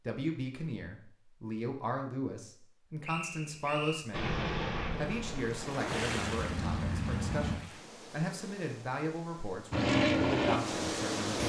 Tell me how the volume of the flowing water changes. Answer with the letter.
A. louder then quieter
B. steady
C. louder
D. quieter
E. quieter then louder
E.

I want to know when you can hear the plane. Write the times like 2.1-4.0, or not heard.
4.1-7.6, 9.7-11.4.